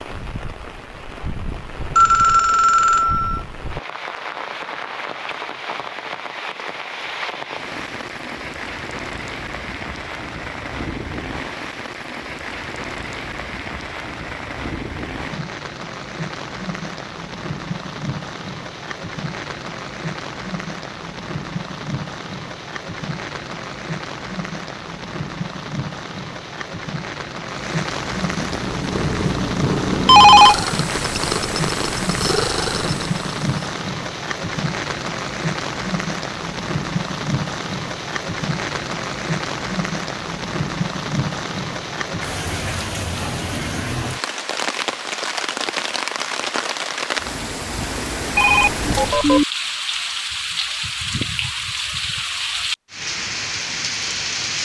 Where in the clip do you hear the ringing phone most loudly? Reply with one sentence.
The loudest moment of the ringing phone is at 30 seconds.